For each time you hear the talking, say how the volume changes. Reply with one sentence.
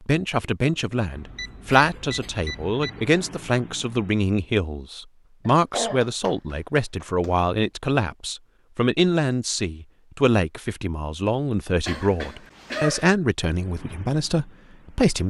You can hear the talking from 0.1 to 15.2 s, at a steady volume.